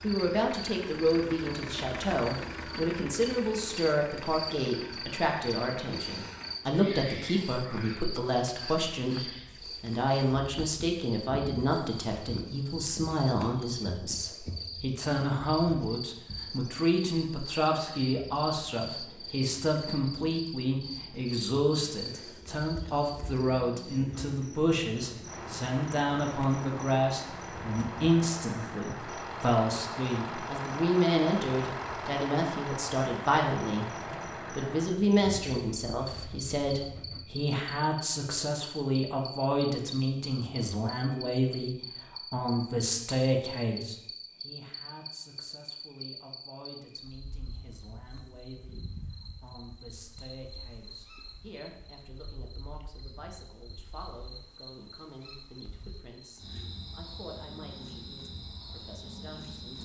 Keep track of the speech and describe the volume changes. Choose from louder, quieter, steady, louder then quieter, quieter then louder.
quieter.